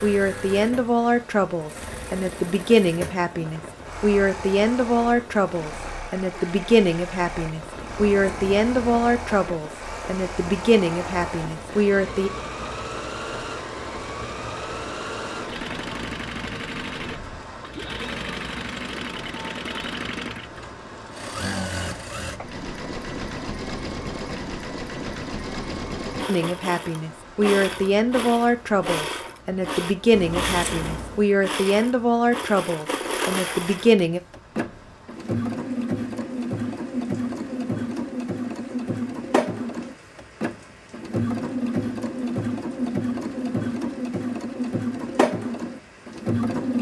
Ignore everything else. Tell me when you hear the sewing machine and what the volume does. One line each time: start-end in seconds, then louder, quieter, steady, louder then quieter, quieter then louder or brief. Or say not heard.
0.0-46.7 louder.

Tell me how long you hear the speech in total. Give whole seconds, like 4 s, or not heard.
20 s.